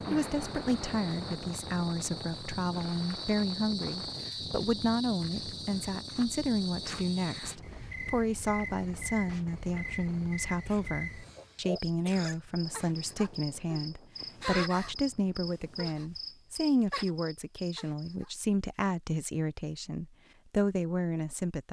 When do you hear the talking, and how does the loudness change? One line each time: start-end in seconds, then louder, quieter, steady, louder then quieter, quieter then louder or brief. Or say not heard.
0.1-21.6 steady.